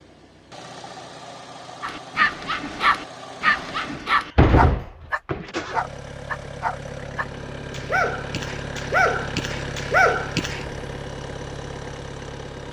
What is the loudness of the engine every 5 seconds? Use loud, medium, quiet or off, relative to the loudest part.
medium, loud, loud.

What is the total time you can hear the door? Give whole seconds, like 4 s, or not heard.
2 s.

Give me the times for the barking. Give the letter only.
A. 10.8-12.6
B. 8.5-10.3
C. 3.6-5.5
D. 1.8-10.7
D.